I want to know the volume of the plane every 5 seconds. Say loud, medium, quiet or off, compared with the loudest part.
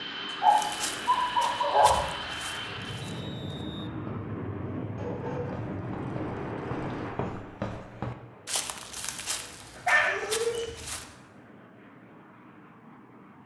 loud, loud, quiet.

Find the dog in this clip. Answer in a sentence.
You can hear the dog from 0.3 to 2.0 s, from 5.0 to 7.1 s and from 9.8 to 10.7 s.